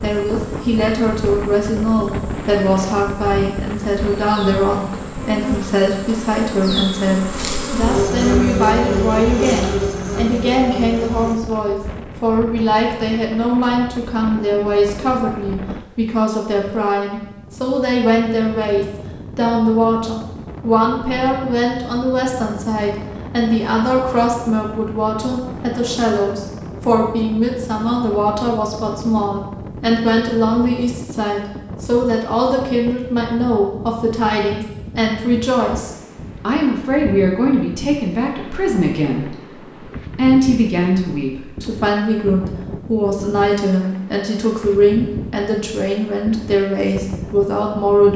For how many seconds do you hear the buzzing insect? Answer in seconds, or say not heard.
11 s.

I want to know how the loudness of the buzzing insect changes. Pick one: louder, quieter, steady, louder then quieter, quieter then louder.
louder.